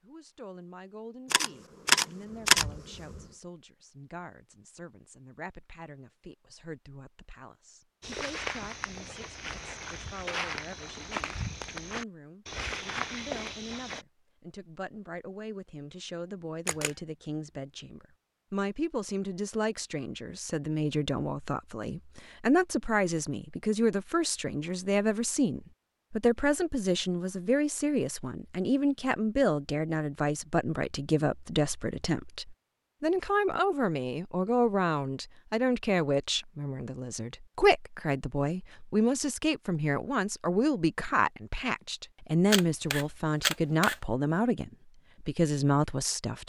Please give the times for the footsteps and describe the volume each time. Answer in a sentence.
You can hear the footsteps from 8.0 to 14.1 s, at a steady volume.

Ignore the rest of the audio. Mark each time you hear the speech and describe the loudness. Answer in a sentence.
The speech can be heard from 0.0 to 46.4 s, getting louder.